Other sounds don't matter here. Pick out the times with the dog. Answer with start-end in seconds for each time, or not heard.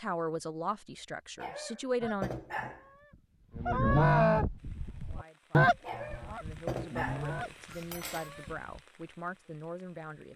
1.4-2.9, 5.8-8.3.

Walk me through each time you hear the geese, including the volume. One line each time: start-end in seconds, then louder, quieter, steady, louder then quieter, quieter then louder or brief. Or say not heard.
2.0-8.8 louder then quieter.